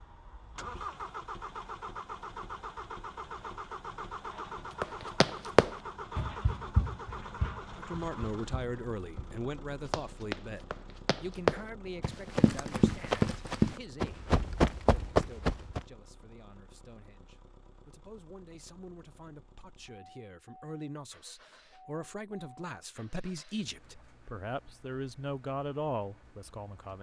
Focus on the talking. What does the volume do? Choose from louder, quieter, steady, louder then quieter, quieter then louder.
quieter then louder.